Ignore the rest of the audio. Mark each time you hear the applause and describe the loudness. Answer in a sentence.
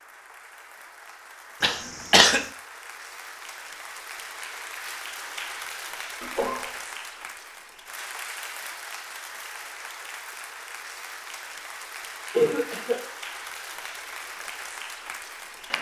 The applause can be heard from 0.0 to 15.7 s, getting louder.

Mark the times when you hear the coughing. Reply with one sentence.
You can hear the coughing from 1.6 to 2.5 s, from 6.2 to 6.7 s and from 12.3 to 13.0 s.